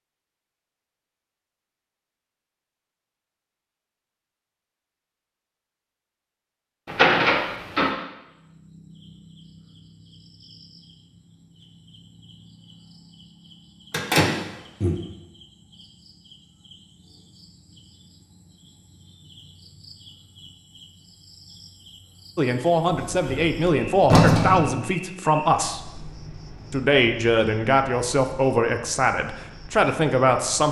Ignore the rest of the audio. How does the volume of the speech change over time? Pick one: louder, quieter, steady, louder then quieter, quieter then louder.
steady.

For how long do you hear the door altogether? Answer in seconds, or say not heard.
4 s.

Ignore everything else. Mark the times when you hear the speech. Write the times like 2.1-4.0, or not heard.
22.4-25.9, 26.7-30.6.